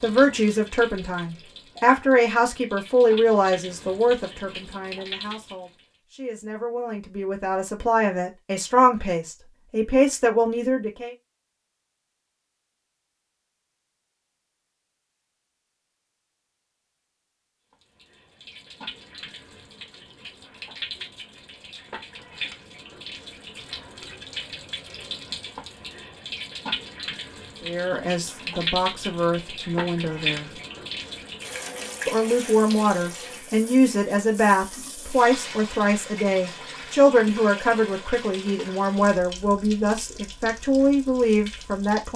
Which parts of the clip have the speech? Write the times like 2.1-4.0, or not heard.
0.0-11.1, 27.6-30.5, 32.0-42.1.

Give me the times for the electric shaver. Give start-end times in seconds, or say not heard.
not heard.